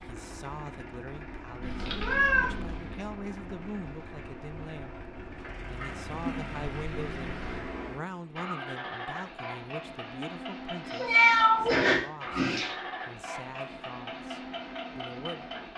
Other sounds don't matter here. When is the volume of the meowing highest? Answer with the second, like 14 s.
11 s.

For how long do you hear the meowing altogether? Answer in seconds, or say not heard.
4 s.